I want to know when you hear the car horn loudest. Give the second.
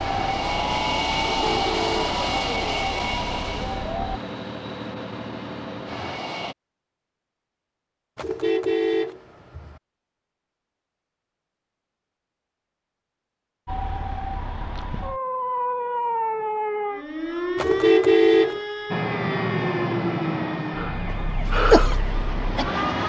18 s.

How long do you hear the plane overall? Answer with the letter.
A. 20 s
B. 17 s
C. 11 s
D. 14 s
C.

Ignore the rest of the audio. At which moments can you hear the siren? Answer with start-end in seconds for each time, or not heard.
0.0-4.2, 13.7-23.0.